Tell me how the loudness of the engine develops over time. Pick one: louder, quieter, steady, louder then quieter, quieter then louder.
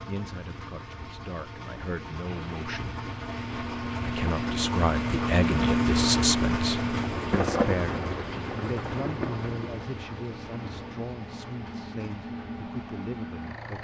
louder then quieter.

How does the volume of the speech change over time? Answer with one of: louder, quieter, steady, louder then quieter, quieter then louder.
louder then quieter.